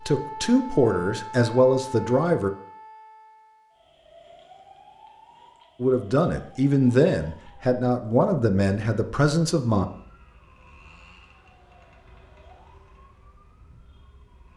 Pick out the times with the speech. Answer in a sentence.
The speech can be heard from 0.1 to 2.5 s and from 5.8 to 9.8 s.